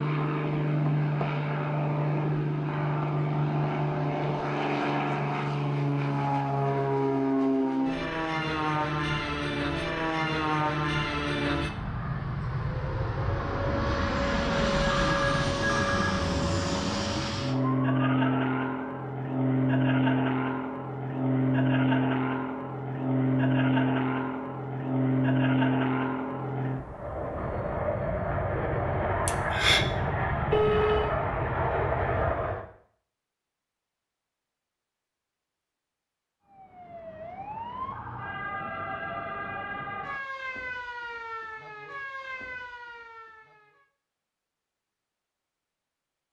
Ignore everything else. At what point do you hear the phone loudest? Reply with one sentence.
The volume of the phone peaks at 31 seconds.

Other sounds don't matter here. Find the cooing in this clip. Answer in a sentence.
The cooing can't be heard in this clip.